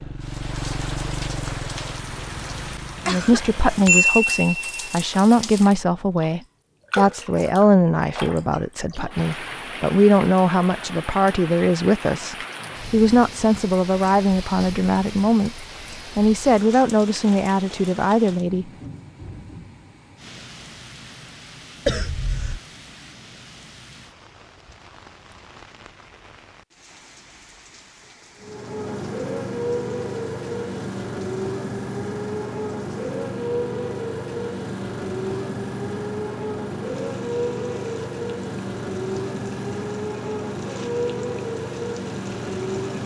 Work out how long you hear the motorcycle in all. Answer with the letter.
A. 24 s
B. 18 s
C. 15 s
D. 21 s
B.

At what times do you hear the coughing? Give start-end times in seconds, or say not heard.
3.0-3.9, 21.9-22.6.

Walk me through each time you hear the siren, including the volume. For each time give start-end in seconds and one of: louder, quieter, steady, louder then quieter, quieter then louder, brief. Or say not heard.
not heard.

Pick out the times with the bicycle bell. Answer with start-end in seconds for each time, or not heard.
3.4-4.9.